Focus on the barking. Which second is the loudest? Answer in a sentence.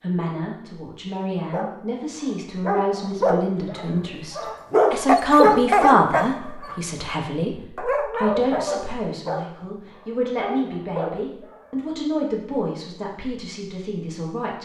The volume of the barking peaks at 6 seconds.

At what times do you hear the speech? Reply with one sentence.
You can hear the speech from 0.0 to 14.5 s.